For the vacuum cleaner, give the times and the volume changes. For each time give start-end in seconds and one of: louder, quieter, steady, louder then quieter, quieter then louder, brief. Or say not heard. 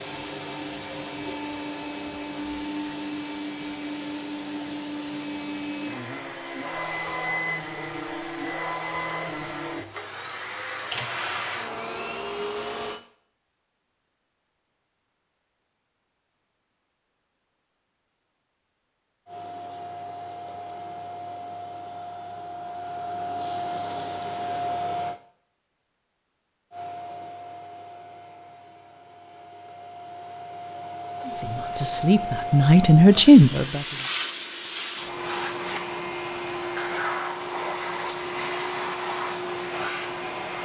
0.0-13.0 steady
19.2-25.2 louder
26.7-40.6 louder.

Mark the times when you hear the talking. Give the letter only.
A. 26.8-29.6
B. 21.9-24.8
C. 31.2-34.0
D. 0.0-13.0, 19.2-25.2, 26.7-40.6
C.